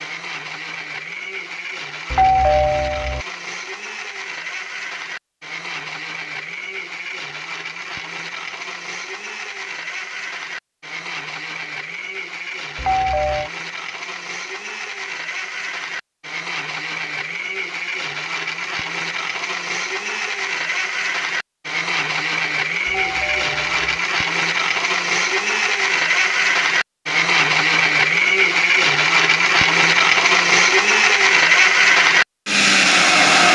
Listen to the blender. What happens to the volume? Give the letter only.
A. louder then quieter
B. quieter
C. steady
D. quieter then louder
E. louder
E.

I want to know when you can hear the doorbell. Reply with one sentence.
The doorbell can be heard from 2.1 to 3.2 s, from 12.8 to 13.5 s and from 22.9 to 24.0 s.